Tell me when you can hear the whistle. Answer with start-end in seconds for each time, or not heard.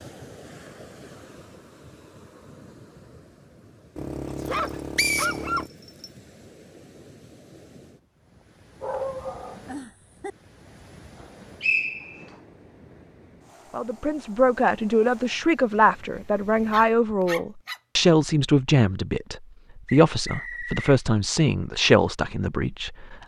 5.0-6.0, 11.6-12.2, 19.9-20.9.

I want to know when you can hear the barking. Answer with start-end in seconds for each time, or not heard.
4.0-5.7, 8.8-10.3, 16.6-17.8.